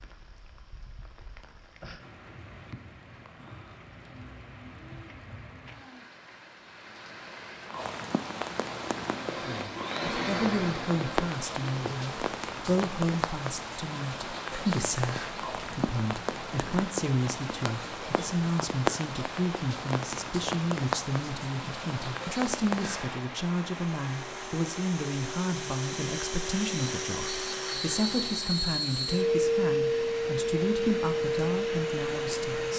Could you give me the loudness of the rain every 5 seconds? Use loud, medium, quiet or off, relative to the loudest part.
quiet, medium, loud, loud, loud, medium, medium.